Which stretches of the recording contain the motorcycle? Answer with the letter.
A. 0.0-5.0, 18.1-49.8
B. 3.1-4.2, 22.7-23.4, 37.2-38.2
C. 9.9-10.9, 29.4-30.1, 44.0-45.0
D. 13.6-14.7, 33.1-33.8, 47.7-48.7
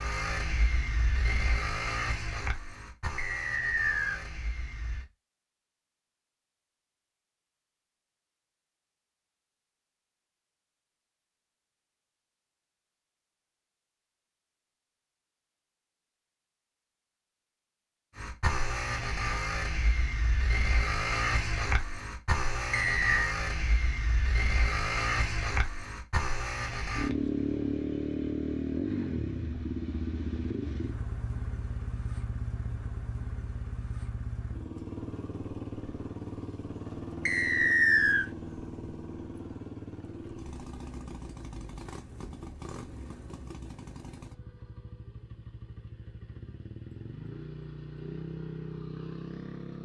A.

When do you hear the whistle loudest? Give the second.
38 s.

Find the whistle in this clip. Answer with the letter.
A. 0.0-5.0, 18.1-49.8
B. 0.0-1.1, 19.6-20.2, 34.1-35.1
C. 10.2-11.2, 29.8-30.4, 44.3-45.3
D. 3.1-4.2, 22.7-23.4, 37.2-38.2
D.